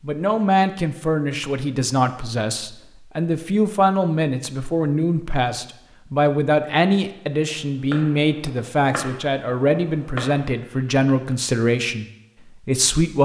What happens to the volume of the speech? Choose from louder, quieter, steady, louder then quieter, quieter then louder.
steady.